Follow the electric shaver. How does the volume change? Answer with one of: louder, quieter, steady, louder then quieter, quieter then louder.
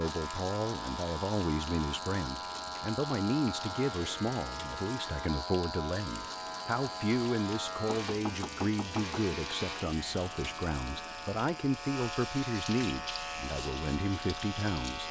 steady.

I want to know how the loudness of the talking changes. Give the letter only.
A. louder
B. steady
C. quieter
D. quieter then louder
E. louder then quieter
B.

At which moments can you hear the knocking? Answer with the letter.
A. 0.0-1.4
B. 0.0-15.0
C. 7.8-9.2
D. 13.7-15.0
C.